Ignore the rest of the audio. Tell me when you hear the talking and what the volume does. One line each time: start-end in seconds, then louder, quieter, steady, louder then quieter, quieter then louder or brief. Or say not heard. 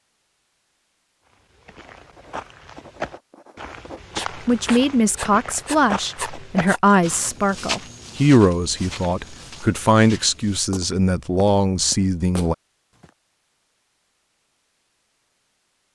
4.2-12.6 steady.